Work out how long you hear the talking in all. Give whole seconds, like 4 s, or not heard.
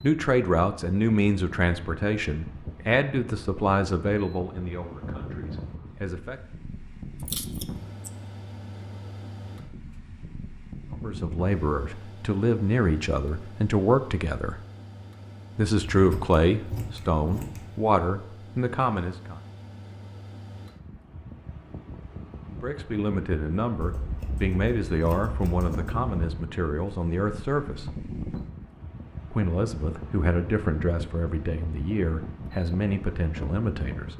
24 s.